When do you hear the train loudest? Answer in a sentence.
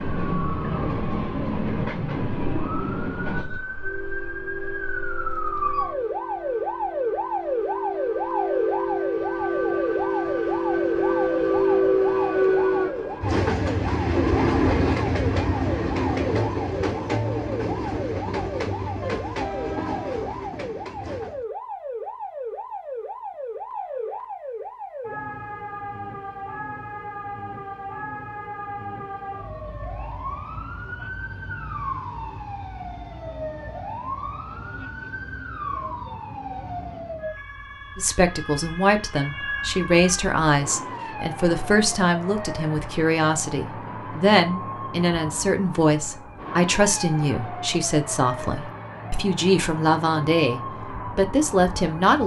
The volume of the train peaks at 12 seconds.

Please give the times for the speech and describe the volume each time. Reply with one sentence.
The speech can be heard from 38.0 to 52.2 s, at a steady volume.